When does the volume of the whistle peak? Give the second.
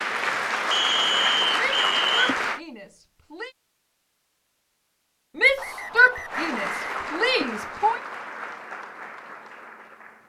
1 s.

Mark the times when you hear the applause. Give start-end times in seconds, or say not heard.
0.0-2.6, 6.2-10.2.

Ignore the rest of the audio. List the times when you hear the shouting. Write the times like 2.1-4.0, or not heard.
1.6-3.5, 5.3-8.0.